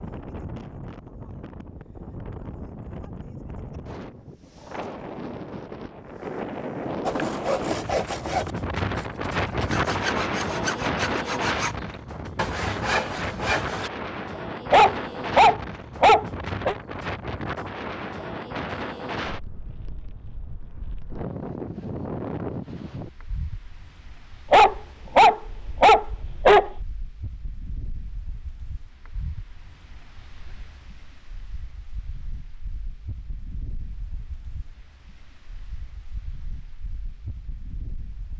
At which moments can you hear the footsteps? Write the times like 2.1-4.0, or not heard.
not heard.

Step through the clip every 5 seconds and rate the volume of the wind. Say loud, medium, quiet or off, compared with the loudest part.
medium, loud, loud, loud, medium, quiet, quiet, quiet.